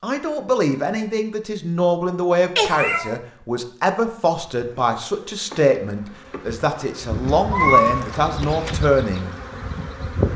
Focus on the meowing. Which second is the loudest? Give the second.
8 s.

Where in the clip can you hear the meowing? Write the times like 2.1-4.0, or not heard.
2.5-3.1, 7.5-8.8.